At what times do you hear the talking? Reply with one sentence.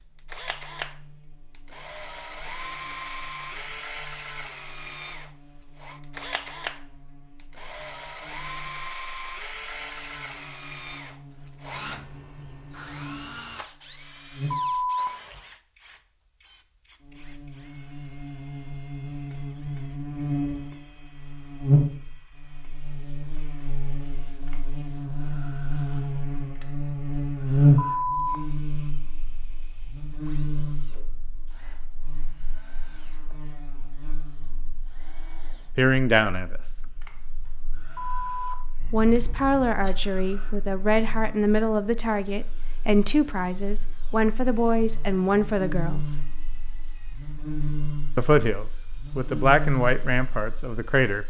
The talking can be heard from 35.8 to 36.6 s, from 38.9 to 46.2 s and from 48.1 to 51.2 s.